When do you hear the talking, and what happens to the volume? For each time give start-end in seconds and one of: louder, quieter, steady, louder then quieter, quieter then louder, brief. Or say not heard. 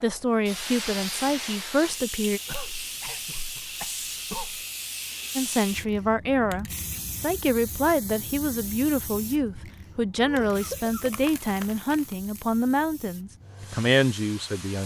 0.0-2.4 brief
5.3-14.8 steady.